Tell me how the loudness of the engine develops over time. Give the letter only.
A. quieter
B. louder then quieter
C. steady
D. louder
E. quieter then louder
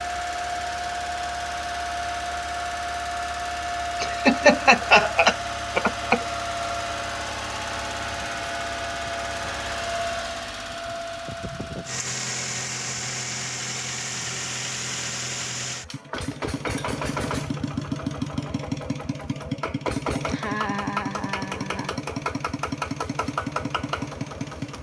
C.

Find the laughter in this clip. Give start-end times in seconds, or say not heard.
4.0-6.2, 20.2-22.0.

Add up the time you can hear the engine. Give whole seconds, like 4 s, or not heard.
25 s.